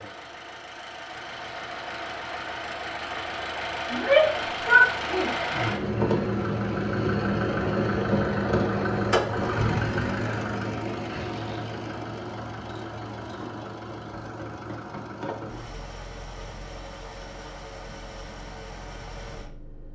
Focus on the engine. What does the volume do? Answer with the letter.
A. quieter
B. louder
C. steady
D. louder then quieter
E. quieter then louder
D.